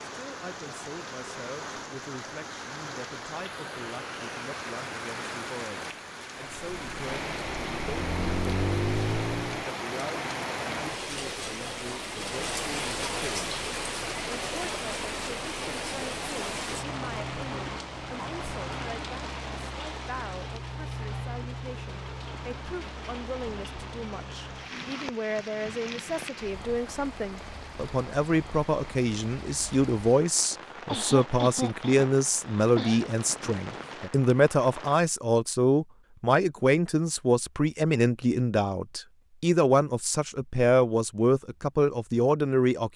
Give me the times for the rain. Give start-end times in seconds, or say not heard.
0.0-35.0.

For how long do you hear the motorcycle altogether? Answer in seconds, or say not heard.
3 s.